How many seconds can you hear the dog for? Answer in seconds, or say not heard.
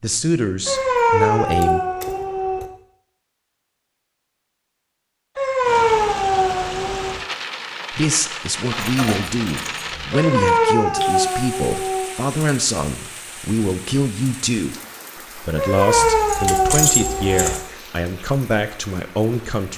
8 s.